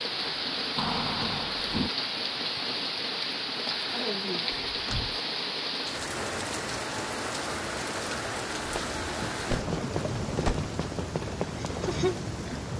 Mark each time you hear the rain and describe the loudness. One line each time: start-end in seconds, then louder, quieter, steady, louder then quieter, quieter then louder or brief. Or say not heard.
0.0-12.7 steady.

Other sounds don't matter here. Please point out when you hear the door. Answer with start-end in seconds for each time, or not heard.
0.8-1.9, 4.5-5.2, 8.7-10.7.